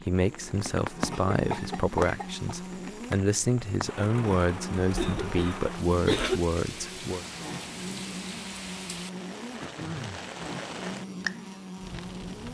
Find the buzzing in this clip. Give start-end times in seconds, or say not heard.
0.1-12.4.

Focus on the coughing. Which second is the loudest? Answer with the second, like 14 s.
6 s.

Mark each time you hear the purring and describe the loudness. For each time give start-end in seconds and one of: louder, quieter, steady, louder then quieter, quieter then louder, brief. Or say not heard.
not heard.